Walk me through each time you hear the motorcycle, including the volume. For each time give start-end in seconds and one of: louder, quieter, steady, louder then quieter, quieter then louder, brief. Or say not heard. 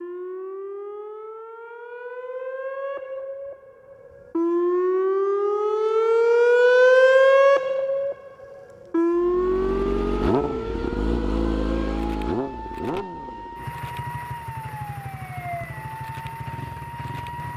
9.2-17.5 quieter.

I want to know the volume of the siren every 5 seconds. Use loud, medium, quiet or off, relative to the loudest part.
medium, loud, quiet, quiet.